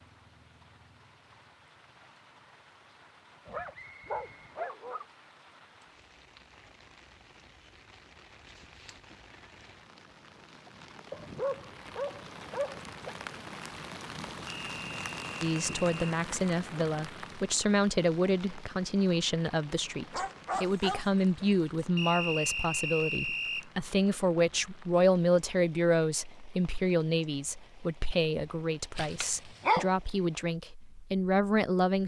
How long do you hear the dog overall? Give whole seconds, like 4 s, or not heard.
6 s.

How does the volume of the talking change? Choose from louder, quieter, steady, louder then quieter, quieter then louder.
steady.